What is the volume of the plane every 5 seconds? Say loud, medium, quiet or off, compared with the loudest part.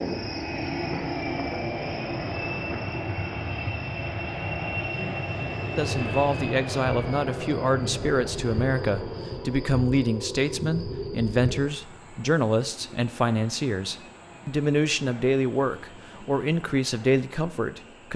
loud, loud, quiet, quiet.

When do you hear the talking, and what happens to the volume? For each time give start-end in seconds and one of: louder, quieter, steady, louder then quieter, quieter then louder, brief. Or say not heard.
5.8-18.1 steady.